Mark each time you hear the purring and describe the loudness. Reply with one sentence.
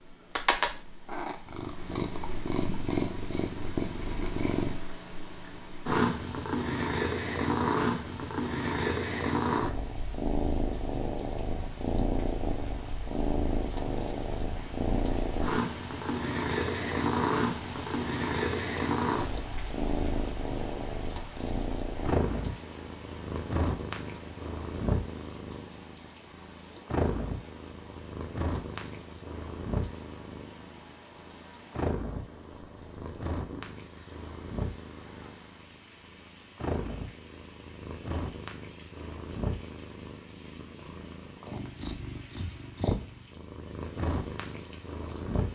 You can hear the purring from 0.1 to 45.5 s, getting quieter.